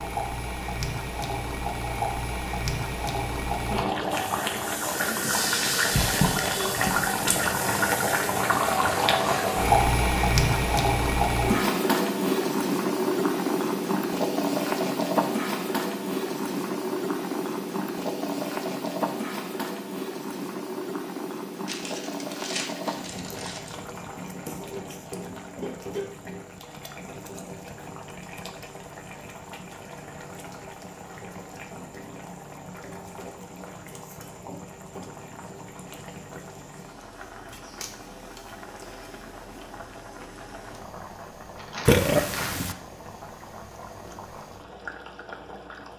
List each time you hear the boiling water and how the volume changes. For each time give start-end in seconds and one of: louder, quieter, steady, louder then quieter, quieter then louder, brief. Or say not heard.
0.0-45.9 quieter.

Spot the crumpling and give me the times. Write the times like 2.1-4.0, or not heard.
5.8-7.1, 21.6-23.8, 41.5-42.8.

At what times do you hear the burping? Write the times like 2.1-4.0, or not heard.
41.9-42.8.